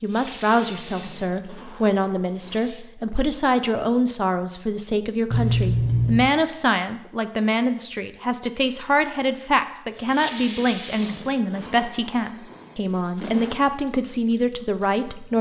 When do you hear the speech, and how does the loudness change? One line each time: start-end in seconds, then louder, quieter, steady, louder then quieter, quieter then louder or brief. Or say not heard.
0.0-15.3 steady.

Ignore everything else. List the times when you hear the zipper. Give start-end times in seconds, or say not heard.
0.8-2.7, 5.3-6.3, 10.8-13.6.